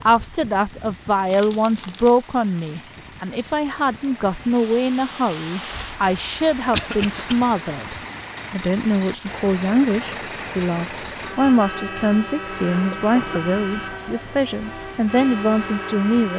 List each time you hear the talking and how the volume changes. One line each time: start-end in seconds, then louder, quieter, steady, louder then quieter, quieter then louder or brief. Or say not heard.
0.0-16.3 steady.